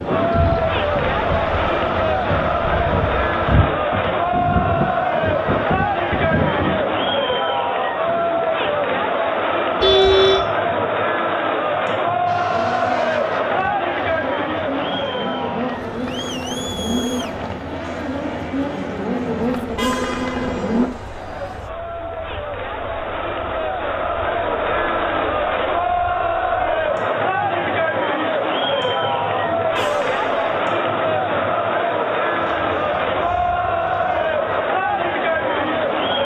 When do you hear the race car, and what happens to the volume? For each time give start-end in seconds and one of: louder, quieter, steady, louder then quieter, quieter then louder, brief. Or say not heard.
12.2-20.9 louder.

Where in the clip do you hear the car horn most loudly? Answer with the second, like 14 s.
10 s.